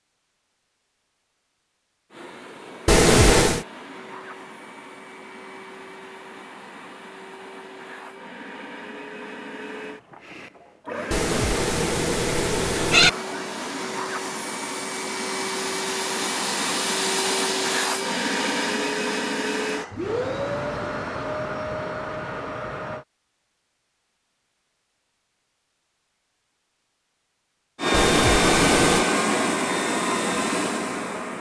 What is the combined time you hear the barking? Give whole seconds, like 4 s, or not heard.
not heard.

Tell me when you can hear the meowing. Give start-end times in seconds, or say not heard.
2.9-3.6, 11.1-13.1, 27.9-29.1.